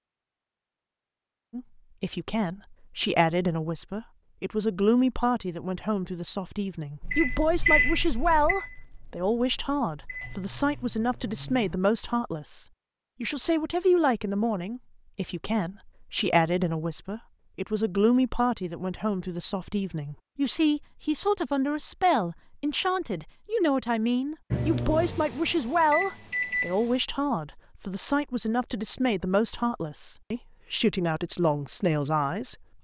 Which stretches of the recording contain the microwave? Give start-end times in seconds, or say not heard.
7.0-11.8, 24.5-27.0.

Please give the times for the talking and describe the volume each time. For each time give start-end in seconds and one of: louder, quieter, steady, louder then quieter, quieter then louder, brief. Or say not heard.
1.5-32.5 steady.